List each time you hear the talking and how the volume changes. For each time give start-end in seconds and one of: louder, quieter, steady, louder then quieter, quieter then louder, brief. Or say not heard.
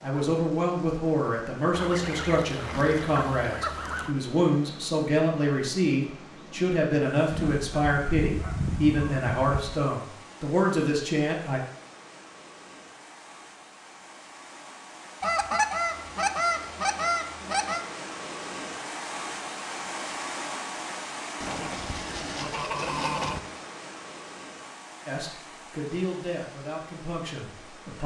0.0-11.6 steady
25.1-28.0 brief.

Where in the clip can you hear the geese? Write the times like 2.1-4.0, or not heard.
1.7-4.2, 7.3-9.8, 15.2-17.8, 21.4-23.4.